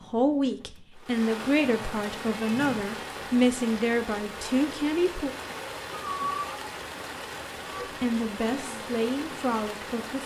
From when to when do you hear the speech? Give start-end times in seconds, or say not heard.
0.1-5.3, 8.0-10.2.